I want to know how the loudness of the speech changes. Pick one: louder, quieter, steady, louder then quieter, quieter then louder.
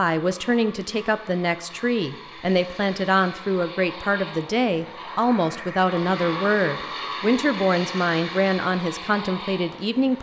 steady.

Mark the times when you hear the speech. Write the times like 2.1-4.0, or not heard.
0.0-10.1.